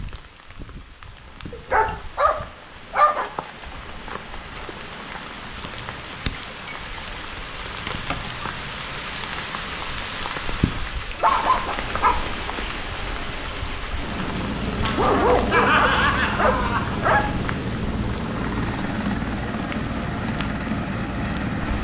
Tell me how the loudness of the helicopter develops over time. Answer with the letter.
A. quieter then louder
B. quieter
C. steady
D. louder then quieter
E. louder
C.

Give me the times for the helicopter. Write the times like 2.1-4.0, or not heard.
13.9-21.8.